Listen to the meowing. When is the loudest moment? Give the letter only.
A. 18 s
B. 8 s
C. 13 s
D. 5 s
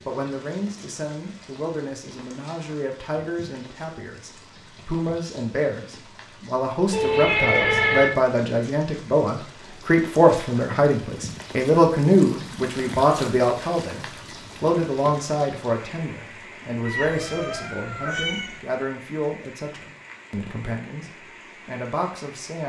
B.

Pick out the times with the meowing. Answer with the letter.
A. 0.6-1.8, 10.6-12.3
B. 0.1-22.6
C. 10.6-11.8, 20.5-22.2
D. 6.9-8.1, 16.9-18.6
D.